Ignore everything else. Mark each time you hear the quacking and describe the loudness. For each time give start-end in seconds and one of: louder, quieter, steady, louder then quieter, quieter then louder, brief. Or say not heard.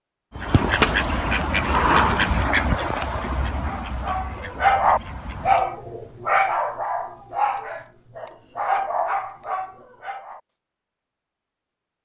0.3-5.7 quieter.